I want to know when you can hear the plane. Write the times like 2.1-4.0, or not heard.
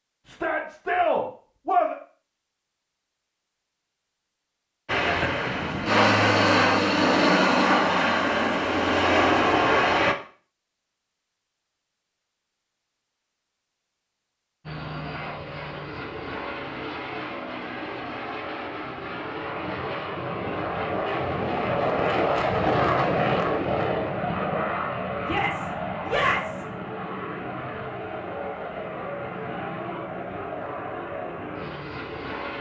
4.8-10.2, 14.6-32.5.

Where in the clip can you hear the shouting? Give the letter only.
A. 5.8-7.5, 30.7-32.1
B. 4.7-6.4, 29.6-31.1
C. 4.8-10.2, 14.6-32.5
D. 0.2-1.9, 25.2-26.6
D.